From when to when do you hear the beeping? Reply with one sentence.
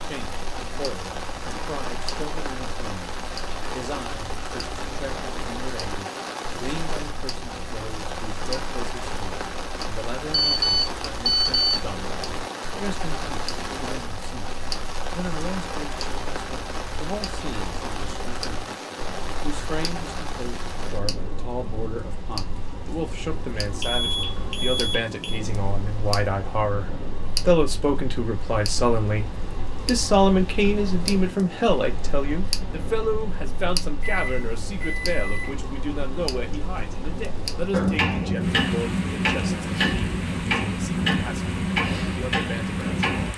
You can hear the beeping from 10.3 to 11.8 s, from 23.8 to 25.4 s and from 34.0 to 35.5 s.